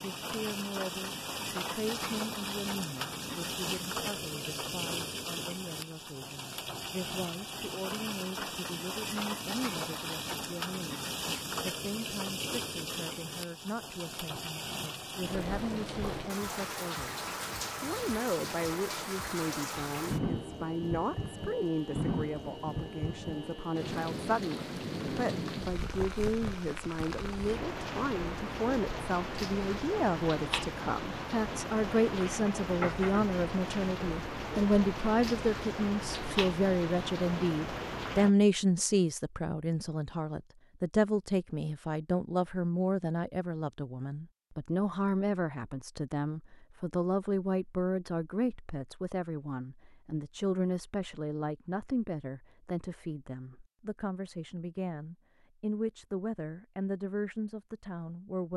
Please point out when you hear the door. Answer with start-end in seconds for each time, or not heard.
not heard.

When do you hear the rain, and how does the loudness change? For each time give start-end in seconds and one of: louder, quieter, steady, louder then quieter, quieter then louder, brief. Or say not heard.
0.0-38.3 steady.